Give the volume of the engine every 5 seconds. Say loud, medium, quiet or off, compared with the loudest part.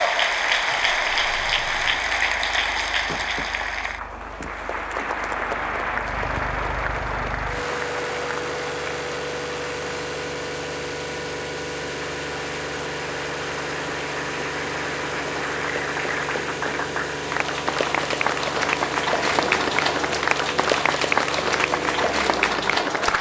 quiet, loud, loud, loud, loud.